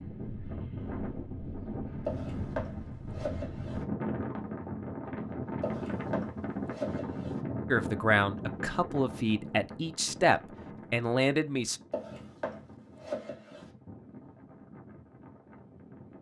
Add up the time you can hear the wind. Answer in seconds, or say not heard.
16 s.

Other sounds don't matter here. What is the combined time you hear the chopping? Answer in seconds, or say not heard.
5 s.